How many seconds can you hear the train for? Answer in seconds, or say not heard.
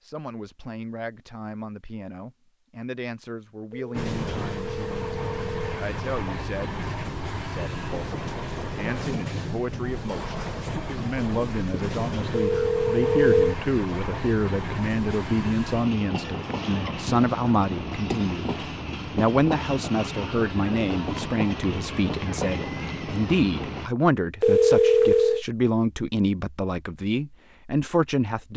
20 s.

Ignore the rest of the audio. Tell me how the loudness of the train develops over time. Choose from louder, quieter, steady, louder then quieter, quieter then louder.
steady.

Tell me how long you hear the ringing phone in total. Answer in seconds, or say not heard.
4 s.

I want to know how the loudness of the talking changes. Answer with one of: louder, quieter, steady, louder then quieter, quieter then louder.
louder.